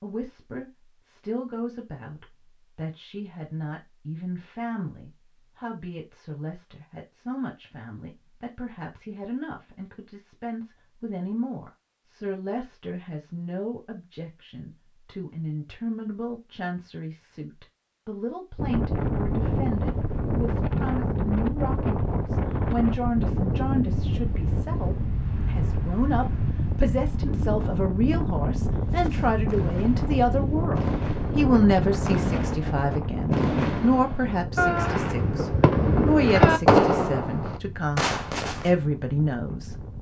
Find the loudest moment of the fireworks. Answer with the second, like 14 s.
37 s.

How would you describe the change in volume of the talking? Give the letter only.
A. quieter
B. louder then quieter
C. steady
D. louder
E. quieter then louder
D.